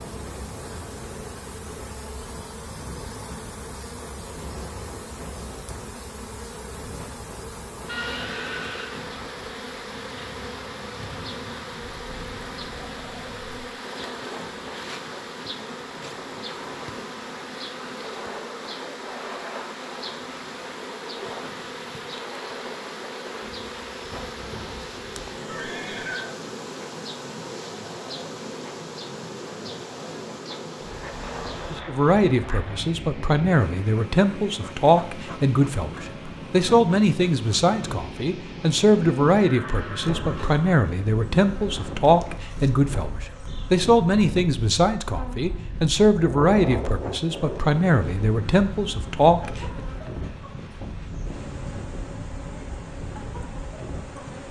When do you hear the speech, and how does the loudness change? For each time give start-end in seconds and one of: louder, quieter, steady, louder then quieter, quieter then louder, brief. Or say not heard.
31.9-49.8 steady.